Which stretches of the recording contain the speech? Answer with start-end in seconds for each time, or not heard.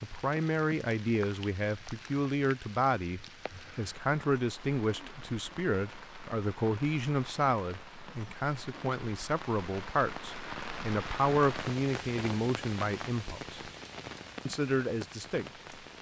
0.0-13.6, 14.4-15.5.